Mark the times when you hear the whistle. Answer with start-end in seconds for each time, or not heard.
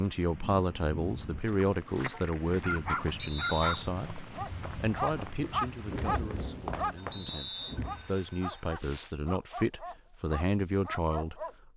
3.1-3.9, 7.1-7.8.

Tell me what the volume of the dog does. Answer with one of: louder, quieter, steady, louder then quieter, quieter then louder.
quieter.